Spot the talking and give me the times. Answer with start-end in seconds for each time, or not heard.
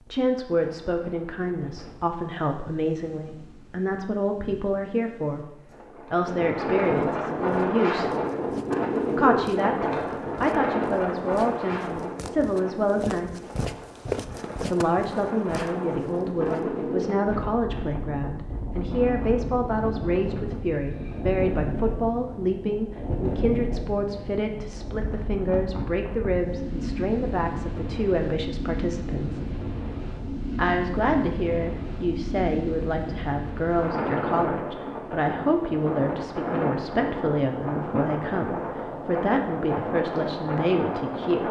0.1-8.1, 9.2-13.4, 14.7-29.4, 30.6-41.4.